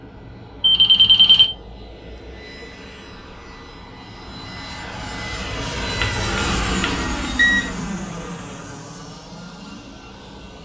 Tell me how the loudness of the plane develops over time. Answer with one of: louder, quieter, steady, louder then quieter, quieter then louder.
louder then quieter.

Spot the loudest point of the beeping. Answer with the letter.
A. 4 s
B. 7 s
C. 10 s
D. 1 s
D.